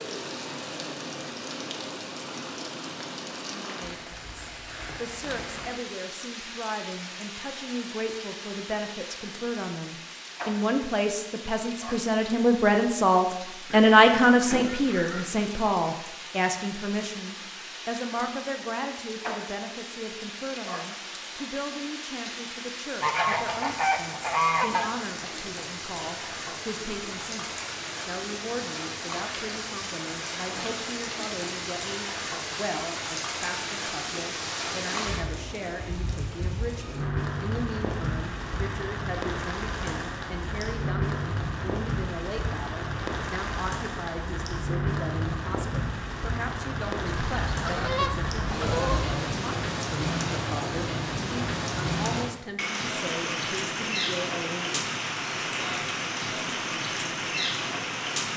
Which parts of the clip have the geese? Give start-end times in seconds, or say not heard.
13.7-15.3, 23.0-24.9, 47.0-49.2.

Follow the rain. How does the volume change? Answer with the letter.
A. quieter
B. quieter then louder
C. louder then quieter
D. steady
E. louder
E.